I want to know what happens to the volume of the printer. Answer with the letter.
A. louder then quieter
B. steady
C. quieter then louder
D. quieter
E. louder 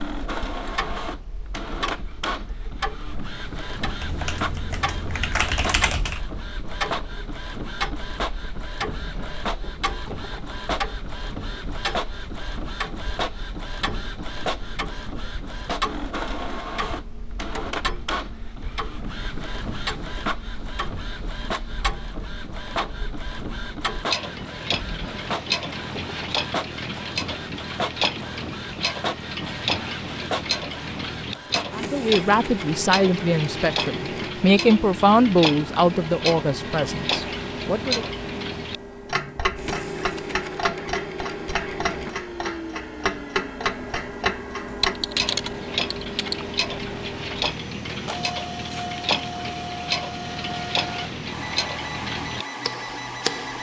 B.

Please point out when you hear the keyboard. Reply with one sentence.
The keyboard can be heard from 4.0 to 6.2 s and from 44.8 to 46.5 s.